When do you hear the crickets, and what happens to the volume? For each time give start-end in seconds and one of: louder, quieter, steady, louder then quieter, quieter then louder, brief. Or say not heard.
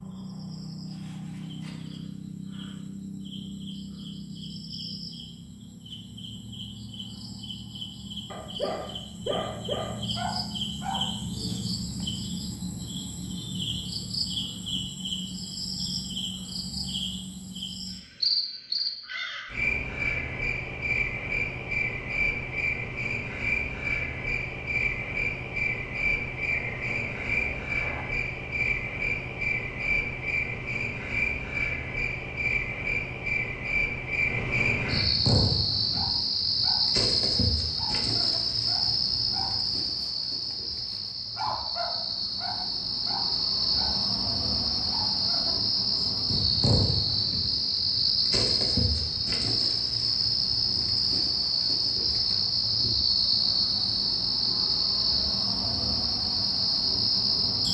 0.0-57.6 louder.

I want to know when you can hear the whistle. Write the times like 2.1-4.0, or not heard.
26.5-28.1.